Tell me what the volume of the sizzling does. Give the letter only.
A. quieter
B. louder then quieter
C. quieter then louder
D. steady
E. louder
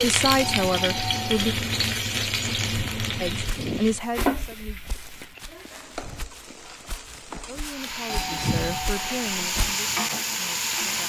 C.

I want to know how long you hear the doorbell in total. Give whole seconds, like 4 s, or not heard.
2 s.